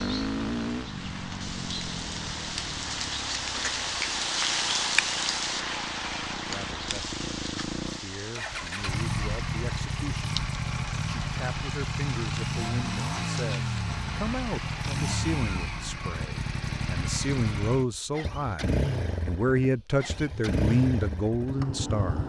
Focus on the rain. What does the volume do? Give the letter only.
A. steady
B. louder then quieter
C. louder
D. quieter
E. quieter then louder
B.